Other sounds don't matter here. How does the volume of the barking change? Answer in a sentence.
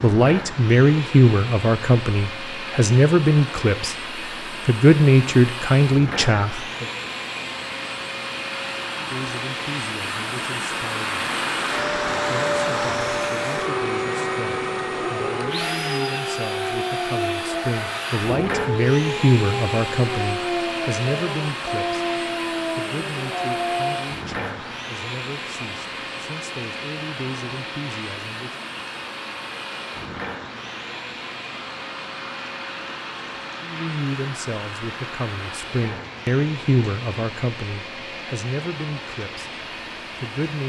The volume of the barking stays about the same.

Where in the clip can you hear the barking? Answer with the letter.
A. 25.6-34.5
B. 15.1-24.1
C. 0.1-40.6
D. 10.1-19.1
B.